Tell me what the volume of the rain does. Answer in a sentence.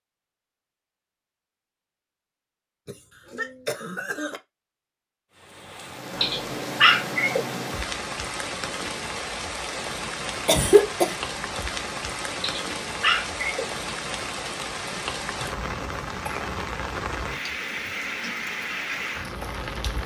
The volume of the rain stays about the same.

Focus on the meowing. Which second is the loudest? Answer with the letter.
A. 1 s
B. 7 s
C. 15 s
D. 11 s
B.